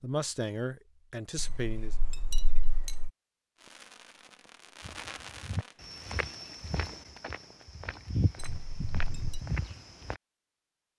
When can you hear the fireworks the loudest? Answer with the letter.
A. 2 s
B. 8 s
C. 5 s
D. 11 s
C.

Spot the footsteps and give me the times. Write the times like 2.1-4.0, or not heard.
4.8-10.2.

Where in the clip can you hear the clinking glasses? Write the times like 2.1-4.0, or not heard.
1.4-3.1, 8.3-9.4.